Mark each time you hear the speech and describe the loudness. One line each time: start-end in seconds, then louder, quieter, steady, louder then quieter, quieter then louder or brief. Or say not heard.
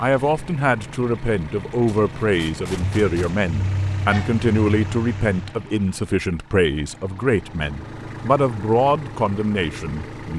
0.0-10.3 steady.